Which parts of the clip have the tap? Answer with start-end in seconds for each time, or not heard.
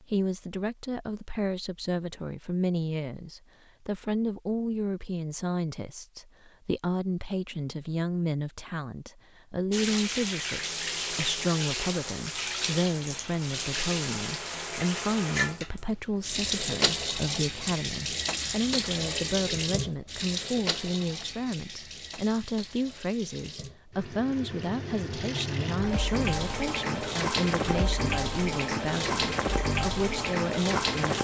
9.7-31.1.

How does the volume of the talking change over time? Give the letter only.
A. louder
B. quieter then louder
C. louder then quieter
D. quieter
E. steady
E.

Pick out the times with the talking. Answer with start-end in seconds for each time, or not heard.
0.0-31.1.